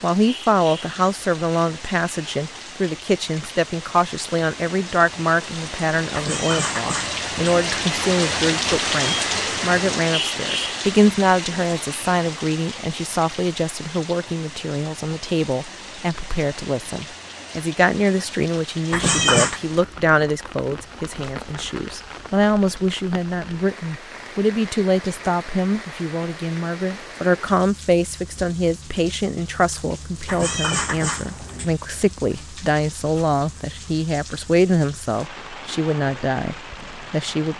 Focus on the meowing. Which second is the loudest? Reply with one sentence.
The loudest moment of the meowing is at 19 seconds.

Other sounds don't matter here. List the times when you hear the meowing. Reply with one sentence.
You can hear the meowing from 6.1 to 7.9 s, from 18.9 to 19.6 s and from 30.2 to 31.7 s.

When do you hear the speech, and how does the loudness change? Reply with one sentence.
You can hear the speech from 0.0 to 37.5 s, at a steady volume.